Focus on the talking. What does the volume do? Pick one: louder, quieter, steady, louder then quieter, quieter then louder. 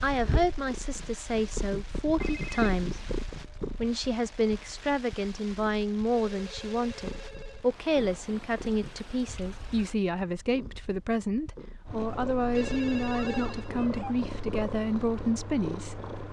steady.